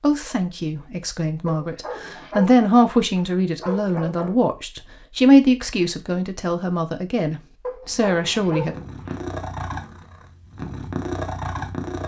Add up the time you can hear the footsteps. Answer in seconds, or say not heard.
not heard.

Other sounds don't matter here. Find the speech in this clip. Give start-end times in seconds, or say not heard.
0.0-8.8.